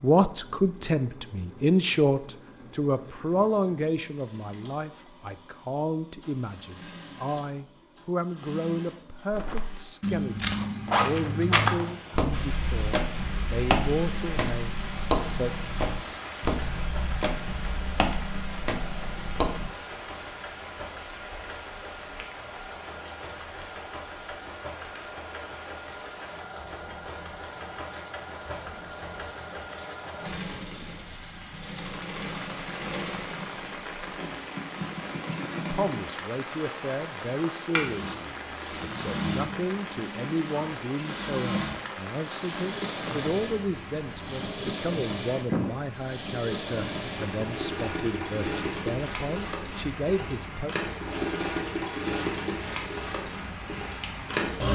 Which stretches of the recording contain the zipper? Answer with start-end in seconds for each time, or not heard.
10.8-12.3.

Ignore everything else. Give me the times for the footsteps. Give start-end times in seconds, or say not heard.
9.3-19.7.